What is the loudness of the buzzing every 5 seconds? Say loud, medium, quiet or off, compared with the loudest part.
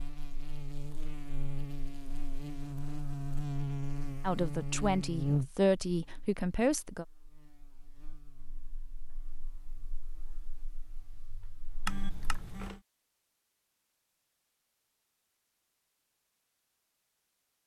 loud, loud, quiet, off.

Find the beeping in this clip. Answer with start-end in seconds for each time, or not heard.
11.8-12.8.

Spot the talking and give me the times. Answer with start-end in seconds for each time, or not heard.
4.2-7.0.